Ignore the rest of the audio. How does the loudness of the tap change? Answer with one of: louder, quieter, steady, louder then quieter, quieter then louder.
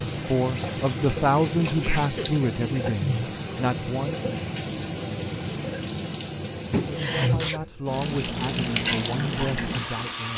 steady.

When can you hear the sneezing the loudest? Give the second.
7 s.